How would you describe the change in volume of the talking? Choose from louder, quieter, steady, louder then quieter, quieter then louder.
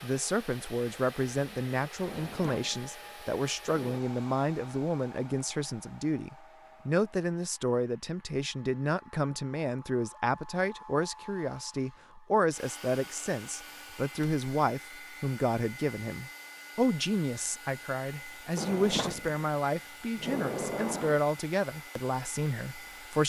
steady.